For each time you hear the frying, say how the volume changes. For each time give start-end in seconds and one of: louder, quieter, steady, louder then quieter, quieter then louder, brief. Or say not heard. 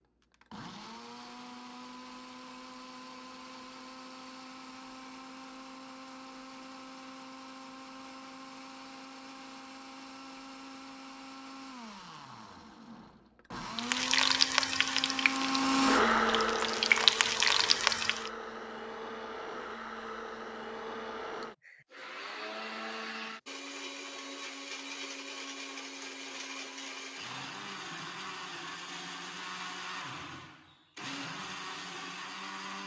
13.8-18.3 quieter then louder.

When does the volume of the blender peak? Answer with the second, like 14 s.
16 s.